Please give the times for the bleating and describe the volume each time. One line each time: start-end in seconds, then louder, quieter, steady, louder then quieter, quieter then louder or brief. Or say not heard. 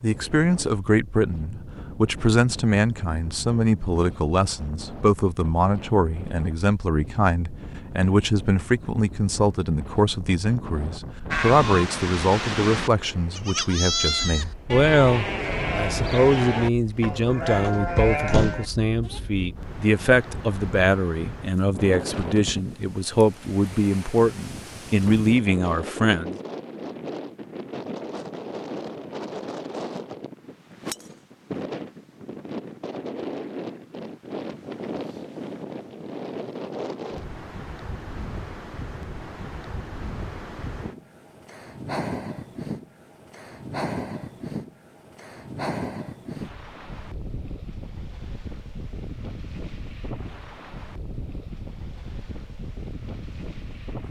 11.3-19.2 steady.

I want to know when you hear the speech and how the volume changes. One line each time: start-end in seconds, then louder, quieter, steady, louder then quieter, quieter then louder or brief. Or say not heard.
0.0-26.4 steady.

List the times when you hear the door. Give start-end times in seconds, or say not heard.
17.4-18.6.